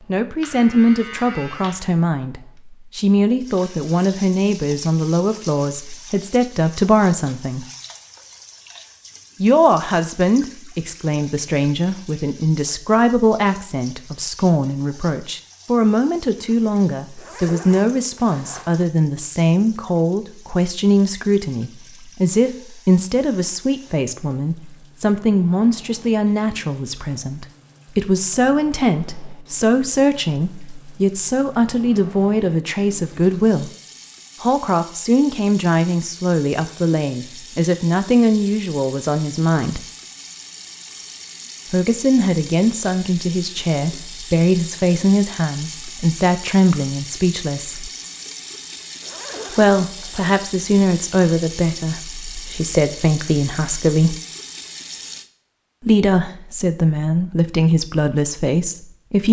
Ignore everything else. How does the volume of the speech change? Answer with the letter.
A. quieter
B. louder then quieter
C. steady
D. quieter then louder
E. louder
C.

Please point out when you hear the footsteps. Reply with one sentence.
You can't hear the footsteps here.